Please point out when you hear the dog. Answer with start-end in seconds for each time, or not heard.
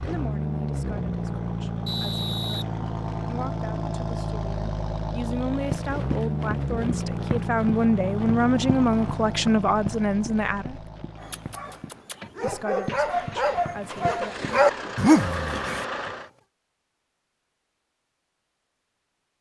11.2-16.2.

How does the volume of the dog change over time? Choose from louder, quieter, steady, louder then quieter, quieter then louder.
louder.